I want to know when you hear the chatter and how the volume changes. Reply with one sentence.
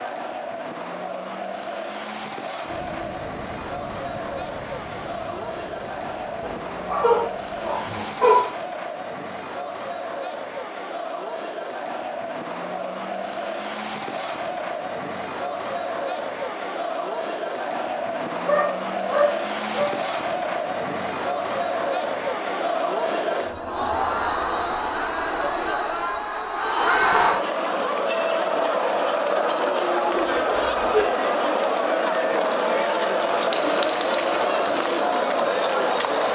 You can hear the chatter from 0.0 to 36.3 s, getting louder.